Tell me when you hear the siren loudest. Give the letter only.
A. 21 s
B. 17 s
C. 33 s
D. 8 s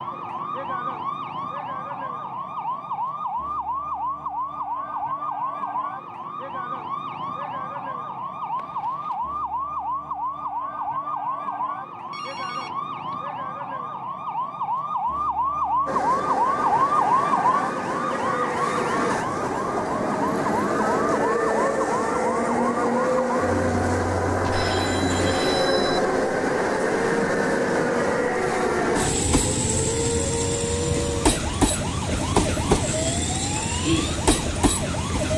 B.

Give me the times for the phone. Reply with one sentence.
The phone can be heard from 8.6 to 9.2 s, from 12.1 to 13.2 s and from 24.4 to 26.0 s.